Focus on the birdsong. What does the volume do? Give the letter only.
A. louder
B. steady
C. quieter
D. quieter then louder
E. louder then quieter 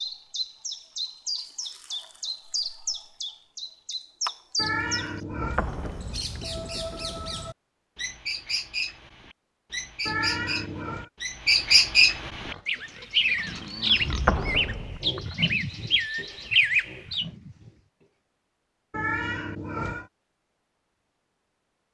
A.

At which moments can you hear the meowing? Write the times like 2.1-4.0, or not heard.
4.5-5.6, 10.1-11.1, 18.9-20.1.